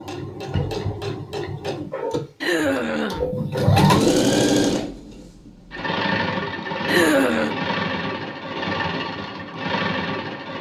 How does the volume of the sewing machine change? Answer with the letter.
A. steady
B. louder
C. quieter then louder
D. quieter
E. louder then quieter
E.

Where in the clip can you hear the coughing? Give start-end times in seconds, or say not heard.
2.4-3.4, 6.8-7.5.